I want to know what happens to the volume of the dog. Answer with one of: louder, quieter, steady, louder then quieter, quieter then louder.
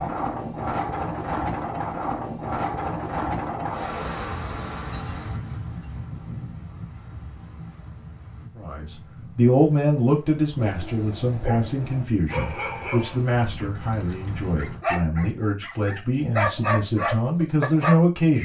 louder.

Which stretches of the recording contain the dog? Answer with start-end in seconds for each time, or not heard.
10.6-17.9.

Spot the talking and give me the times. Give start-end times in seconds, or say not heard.
8.6-18.4.